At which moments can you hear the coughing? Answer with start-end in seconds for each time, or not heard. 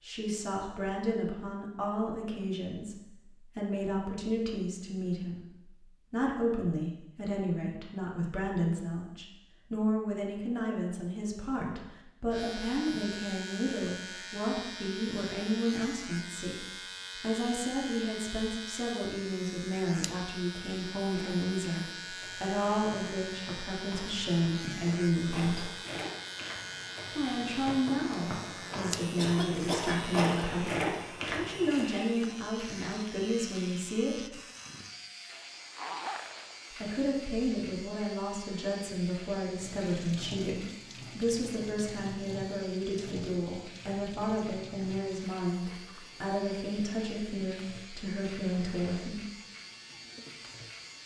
29.1-30.4.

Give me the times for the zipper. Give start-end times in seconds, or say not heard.
35.2-37.1.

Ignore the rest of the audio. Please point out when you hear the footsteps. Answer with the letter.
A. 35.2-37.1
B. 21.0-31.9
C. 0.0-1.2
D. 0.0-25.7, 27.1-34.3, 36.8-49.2
B.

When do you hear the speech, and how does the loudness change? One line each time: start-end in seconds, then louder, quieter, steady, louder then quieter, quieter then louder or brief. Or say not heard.
0.0-25.7 steady
27.1-34.3 steady
36.8-49.2 steady.